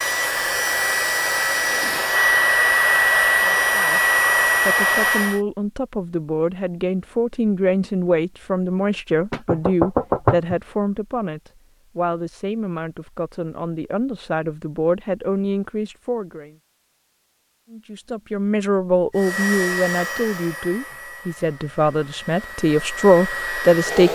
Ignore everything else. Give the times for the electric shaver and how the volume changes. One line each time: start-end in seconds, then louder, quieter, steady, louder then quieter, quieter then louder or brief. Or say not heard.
not heard.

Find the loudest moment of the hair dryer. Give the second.
3 s.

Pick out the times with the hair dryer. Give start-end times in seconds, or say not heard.
0.0-5.4, 19.1-24.1.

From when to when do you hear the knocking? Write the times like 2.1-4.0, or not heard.
9.3-10.6.